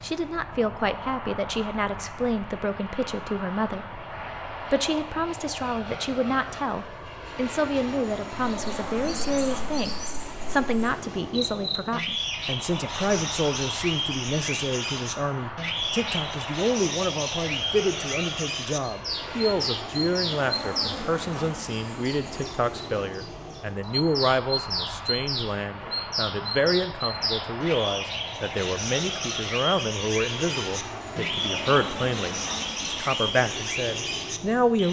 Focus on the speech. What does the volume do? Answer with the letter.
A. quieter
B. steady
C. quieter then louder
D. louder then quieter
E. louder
B.